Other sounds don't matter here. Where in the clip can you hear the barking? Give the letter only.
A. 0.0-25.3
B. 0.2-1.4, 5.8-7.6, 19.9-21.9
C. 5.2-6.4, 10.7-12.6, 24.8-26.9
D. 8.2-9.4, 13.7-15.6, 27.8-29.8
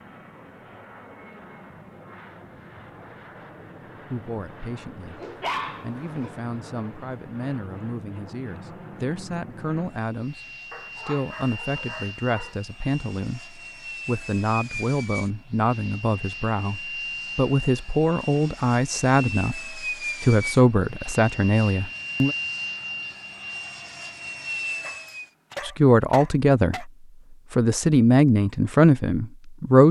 C.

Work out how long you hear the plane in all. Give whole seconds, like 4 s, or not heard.
25 s.